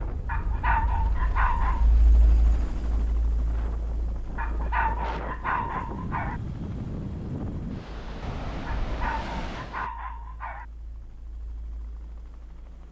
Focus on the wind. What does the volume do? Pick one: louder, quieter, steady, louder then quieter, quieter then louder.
louder.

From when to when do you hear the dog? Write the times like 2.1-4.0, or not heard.
0.2-1.9, 4.3-6.4, 8.7-10.7.